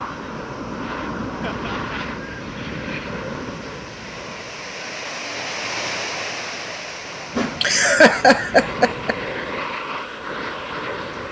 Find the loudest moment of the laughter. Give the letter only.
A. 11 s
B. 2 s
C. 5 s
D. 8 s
D.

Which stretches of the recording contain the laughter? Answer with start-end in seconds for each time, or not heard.
1.4-2.0, 7.3-9.2.